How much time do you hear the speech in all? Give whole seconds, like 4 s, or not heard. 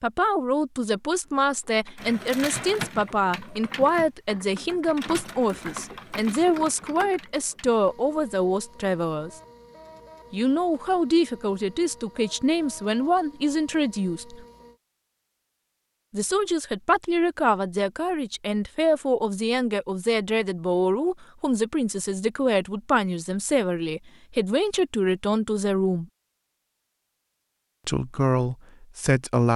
25 s.